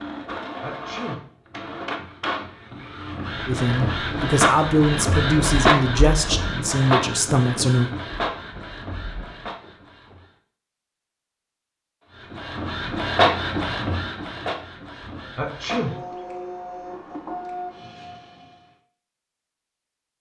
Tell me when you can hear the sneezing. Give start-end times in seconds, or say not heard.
0.6-1.2, 15.3-15.9.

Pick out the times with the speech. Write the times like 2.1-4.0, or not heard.
3.5-7.9.